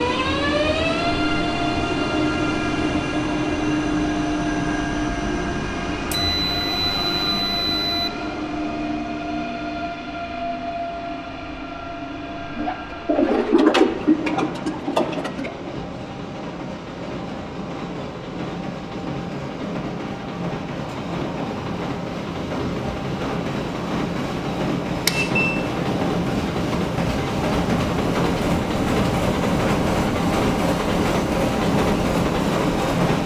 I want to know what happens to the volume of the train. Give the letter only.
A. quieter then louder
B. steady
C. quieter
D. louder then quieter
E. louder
A.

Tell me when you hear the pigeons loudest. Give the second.
14 s.